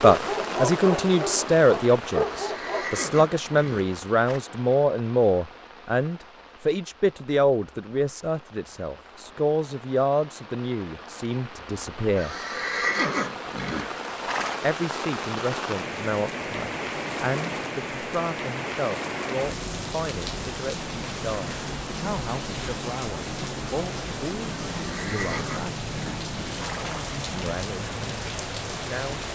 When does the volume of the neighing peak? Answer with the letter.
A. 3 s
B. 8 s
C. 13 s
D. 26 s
C.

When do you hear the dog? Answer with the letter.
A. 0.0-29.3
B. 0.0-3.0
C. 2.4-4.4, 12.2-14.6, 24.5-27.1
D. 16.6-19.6
B.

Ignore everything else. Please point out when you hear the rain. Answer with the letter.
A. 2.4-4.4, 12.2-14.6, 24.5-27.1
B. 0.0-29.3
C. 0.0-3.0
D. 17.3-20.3
B.